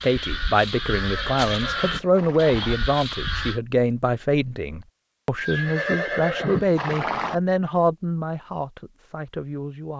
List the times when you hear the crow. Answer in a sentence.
You can hear the crow from 0.0 to 3.6 s.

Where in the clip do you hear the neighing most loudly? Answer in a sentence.
The volume of the neighing peaks at 6 seconds.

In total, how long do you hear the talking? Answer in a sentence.
The talking can be heard for 10 seconds in total.